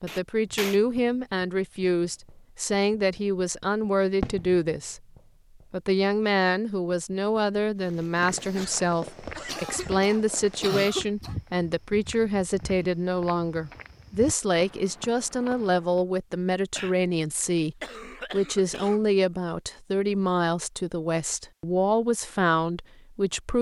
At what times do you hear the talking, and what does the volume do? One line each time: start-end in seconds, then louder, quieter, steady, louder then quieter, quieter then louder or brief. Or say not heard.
0.0-5.0 steady
5.7-23.5 steady.